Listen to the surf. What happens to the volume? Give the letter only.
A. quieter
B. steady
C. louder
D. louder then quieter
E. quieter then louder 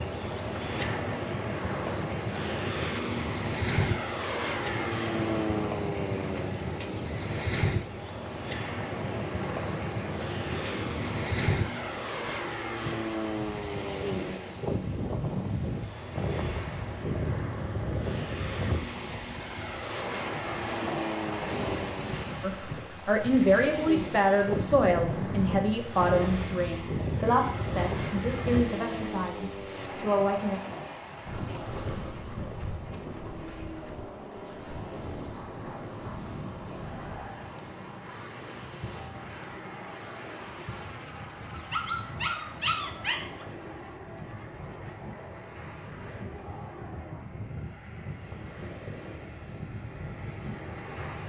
A.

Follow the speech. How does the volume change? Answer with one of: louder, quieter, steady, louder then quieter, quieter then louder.
quieter.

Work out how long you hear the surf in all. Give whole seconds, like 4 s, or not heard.
51 s.